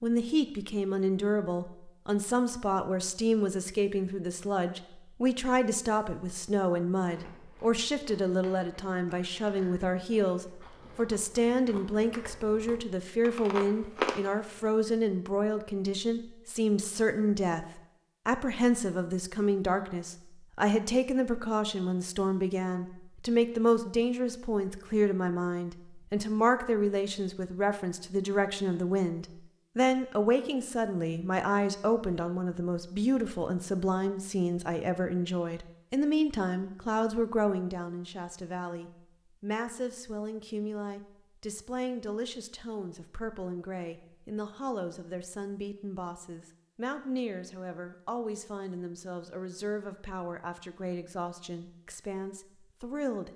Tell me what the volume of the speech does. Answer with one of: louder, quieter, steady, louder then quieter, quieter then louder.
quieter.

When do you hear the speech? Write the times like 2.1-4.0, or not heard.
0.0-53.3.